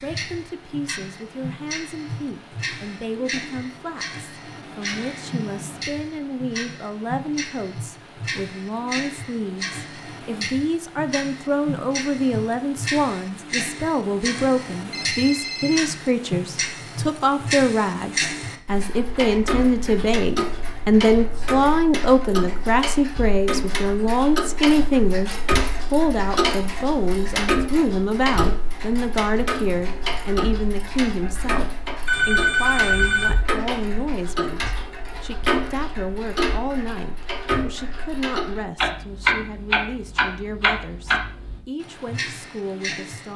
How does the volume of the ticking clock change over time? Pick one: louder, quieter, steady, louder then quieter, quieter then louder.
louder.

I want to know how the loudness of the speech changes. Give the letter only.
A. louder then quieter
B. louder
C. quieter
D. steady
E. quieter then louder
A.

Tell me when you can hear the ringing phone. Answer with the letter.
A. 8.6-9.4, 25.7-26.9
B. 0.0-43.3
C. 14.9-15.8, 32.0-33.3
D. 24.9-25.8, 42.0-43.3
C.